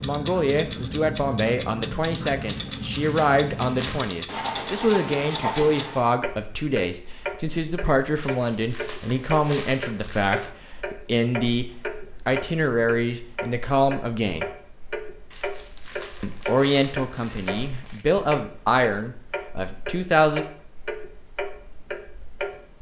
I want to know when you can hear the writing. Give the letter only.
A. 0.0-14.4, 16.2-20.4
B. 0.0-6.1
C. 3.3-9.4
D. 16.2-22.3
B.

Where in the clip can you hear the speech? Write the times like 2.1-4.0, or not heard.
0.0-14.4, 16.2-20.4.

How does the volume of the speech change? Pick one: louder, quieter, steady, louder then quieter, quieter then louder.
steady.